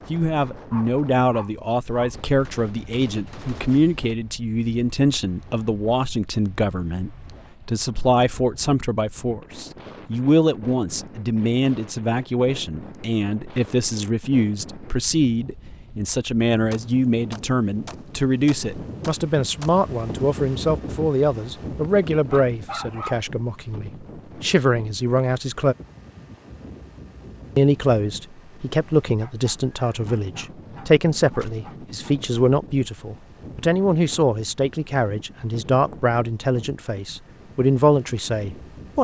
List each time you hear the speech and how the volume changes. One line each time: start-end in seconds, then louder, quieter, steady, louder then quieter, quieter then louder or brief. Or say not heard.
0.1-25.8 steady
27.6-39.0 steady.